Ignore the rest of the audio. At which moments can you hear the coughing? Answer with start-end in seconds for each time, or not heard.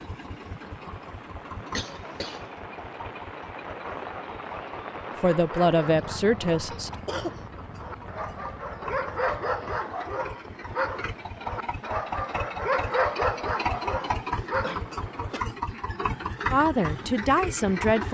1.7-2.5, 6.7-7.4, 14.6-16.0.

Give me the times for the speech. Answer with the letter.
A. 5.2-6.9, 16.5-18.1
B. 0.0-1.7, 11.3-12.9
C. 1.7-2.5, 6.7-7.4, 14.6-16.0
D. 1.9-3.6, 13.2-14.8
A.